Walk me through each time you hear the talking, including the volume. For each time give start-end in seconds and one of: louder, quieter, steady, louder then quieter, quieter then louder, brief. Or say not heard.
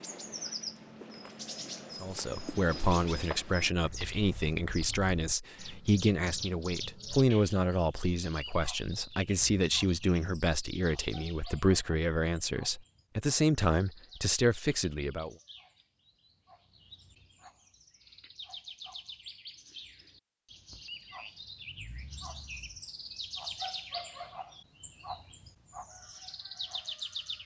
2.0-15.3 steady.